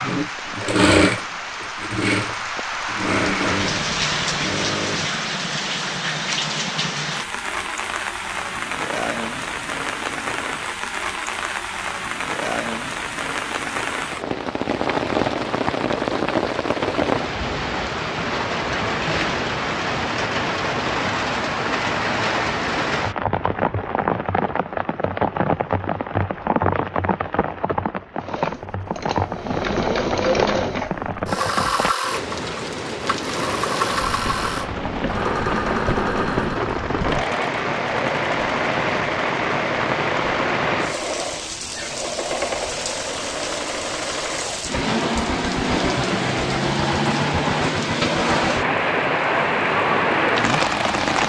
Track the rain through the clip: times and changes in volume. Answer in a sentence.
The rain can be heard from 0.0 to 51.2 s, at a steady volume.